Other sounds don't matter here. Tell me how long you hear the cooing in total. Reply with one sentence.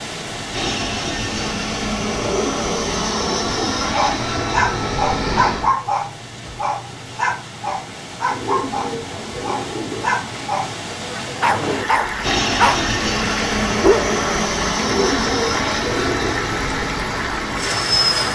The cooing can be heard for 5 seconds in total.